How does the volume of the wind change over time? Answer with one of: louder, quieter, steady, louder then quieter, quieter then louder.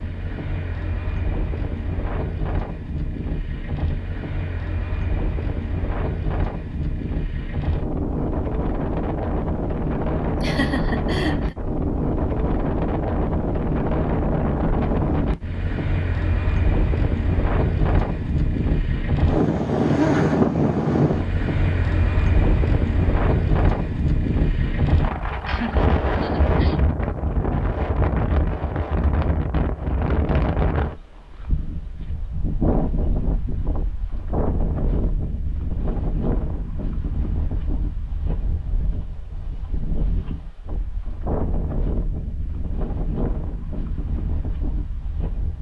louder then quieter.